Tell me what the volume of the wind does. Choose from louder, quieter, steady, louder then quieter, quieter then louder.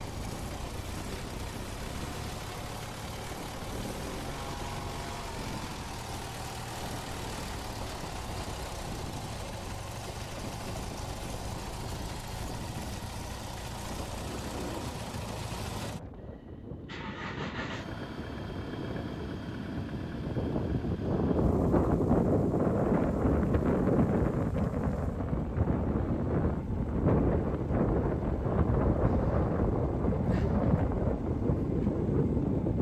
louder.